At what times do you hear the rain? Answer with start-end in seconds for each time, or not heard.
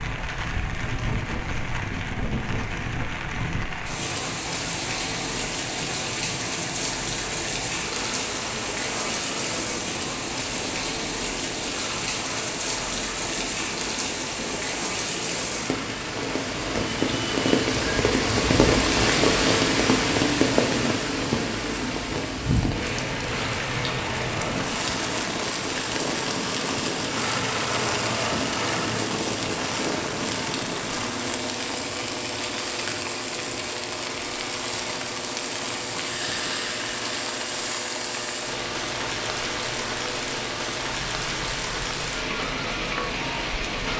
0.0-43.9.